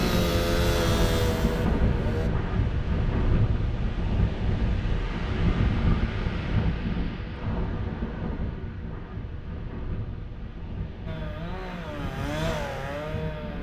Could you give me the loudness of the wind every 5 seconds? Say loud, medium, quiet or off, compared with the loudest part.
loud, loud, medium.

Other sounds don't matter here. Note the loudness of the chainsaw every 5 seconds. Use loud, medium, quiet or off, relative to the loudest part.
loud, off, medium.